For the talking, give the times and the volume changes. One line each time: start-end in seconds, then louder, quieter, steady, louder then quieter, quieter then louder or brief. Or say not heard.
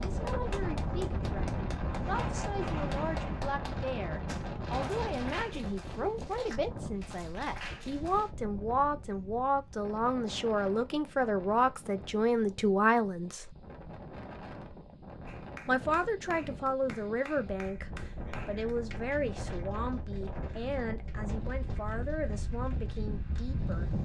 0.0-13.6 louder
15.7-24.0 quieter.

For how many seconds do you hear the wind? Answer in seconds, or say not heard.
24 s.